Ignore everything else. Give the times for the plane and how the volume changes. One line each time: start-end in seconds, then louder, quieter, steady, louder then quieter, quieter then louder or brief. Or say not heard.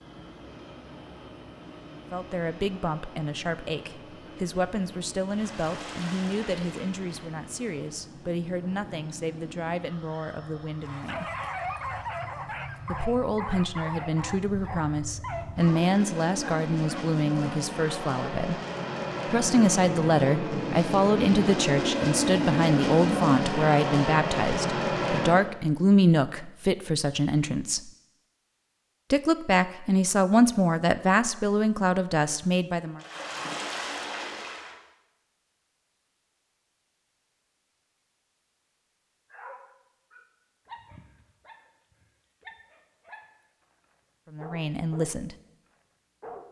0.0-25.4 louder.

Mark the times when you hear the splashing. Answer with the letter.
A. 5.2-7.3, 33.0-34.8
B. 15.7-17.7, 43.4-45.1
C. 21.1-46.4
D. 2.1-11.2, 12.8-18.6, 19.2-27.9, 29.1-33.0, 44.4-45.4
A.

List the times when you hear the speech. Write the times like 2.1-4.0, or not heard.
2.1-11.2, 12.8-18.6, 19.2-27.9, 29.1-33.0, 44.4-45.4.